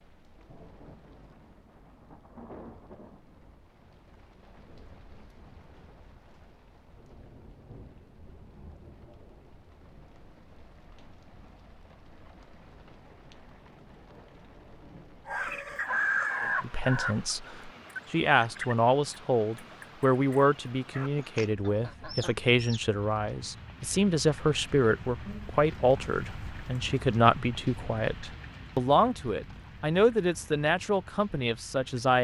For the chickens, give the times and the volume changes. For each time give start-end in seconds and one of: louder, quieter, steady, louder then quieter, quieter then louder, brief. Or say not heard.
15.2-22.9 quieter.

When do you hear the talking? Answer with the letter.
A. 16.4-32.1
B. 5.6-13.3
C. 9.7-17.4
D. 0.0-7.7
A.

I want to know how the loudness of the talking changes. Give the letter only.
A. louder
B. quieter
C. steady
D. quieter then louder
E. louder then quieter
C.